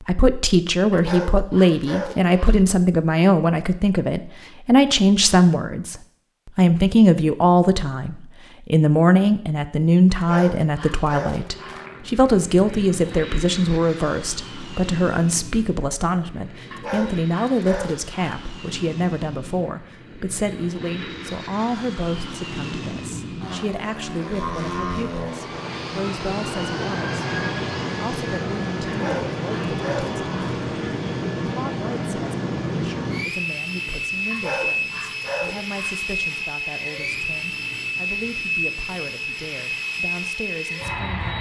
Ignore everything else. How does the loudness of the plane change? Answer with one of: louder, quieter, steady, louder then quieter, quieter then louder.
louder.